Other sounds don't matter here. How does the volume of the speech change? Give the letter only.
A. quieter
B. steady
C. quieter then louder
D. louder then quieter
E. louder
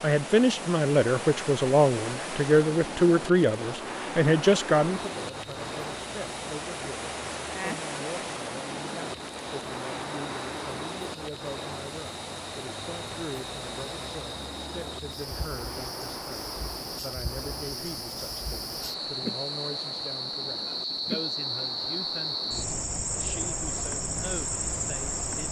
A.